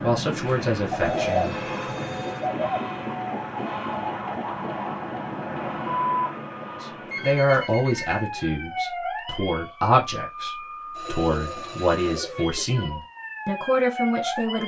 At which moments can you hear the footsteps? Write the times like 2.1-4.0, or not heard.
not heard.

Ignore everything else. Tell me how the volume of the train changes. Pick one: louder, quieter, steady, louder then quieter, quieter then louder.
steady.